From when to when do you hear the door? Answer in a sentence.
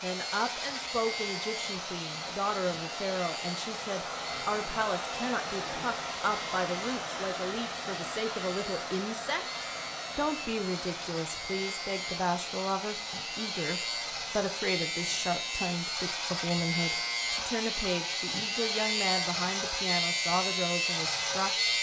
The door can't be heard in this clip.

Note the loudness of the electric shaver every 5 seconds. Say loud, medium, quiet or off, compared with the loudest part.
medium, quiet, medium, loud, loud.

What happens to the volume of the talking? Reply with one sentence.
The volume of the talking stays about the same.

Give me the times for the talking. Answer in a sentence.
The talking can be heard from 0.0 to 21.7 s.